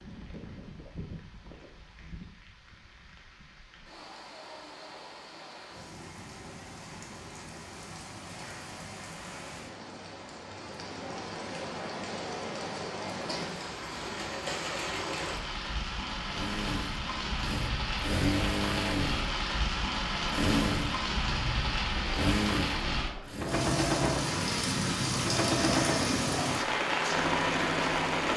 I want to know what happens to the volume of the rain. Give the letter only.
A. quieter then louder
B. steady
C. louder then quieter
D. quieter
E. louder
E.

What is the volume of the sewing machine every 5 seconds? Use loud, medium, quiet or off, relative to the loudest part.
off, off, off, loud, loud, loud.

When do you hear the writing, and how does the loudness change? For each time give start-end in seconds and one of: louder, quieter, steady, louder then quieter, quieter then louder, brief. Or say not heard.
not heard.